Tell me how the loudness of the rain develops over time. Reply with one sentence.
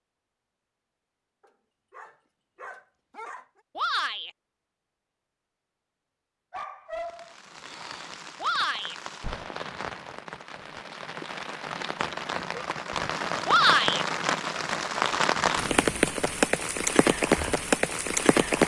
The loudness of the rain goes up.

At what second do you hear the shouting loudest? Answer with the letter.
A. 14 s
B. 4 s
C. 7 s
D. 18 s
A.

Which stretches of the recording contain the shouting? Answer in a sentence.
The shouting can be heard from 3.8 to 4.3 s, from 8.4 to 8.9 s and from 13.4 to 14.1 s.